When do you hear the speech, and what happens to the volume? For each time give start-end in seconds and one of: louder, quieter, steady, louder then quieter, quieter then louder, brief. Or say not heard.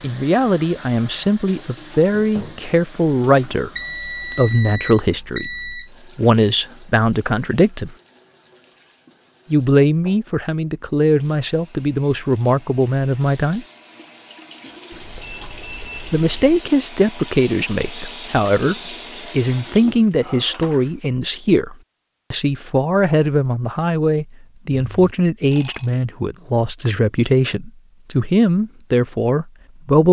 0.0-8.0 steady
9.5-13.7 steady
16.1-30.0 steady.